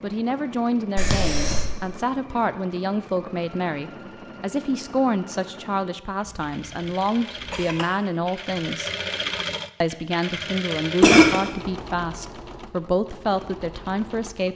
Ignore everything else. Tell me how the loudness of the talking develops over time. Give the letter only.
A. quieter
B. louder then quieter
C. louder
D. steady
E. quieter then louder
D.